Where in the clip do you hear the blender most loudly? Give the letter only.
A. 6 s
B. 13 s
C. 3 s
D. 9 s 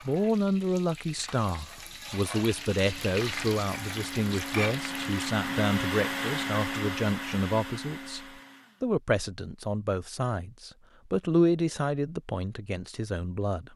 A.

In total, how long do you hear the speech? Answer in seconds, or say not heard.
14 s.